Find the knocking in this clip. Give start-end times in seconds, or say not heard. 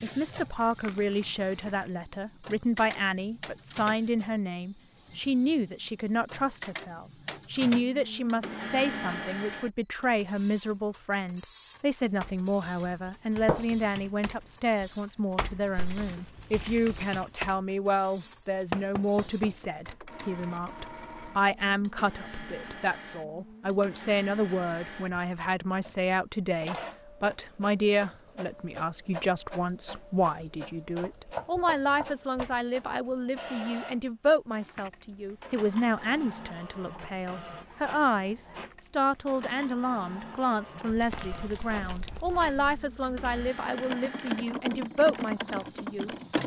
13.1-13.7, 18.7-19.6, 31.0-33.0.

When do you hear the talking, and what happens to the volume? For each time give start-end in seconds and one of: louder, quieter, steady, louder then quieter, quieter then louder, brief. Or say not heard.
0.0-46.1 steady.